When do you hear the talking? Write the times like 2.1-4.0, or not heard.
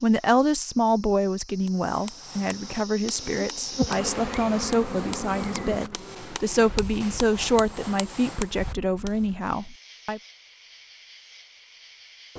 0.0-10.2.